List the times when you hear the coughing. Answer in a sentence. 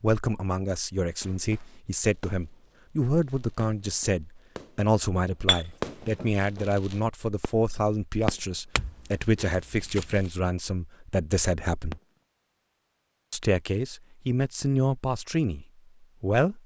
You can't hear the coughing here.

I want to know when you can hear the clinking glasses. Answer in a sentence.
You can hear the clinking glasses from 5.5 to 6.3 s and from 8.8 to 10.3 s.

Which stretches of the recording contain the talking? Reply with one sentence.
You can hear the talking from 0.0 to 12.0 s and from 13.3 to 16.6 s.